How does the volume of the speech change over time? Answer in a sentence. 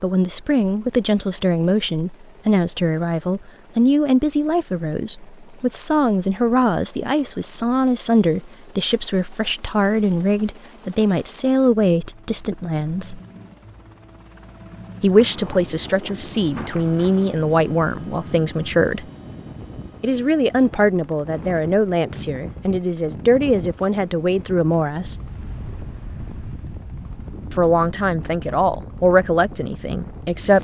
The volume of the speech stays about the same.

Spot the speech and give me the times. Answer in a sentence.
You can hear the speech from 0.0 to 13.2 s, from 15.0 to 19.1 s, from 20.0 to 25.2 s and from 27.5 to 30.6 s.